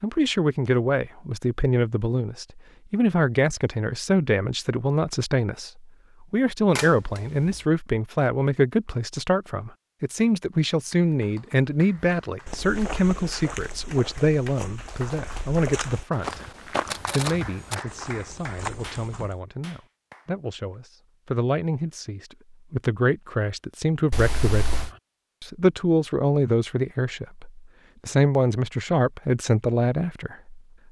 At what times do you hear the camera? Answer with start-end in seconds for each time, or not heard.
6.8-7.6, 16.9-17.8, 24.1-24.9.